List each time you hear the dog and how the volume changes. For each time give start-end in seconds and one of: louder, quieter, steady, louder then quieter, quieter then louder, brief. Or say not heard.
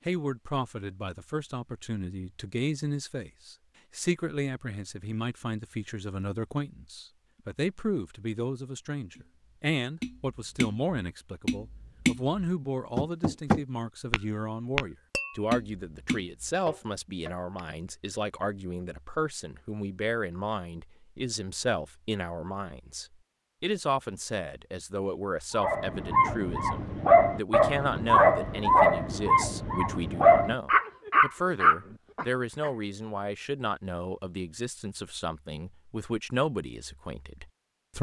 25.6-32.7 steady.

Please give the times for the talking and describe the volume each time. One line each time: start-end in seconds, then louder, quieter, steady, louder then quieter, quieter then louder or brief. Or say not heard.
0.1-37.9 steady.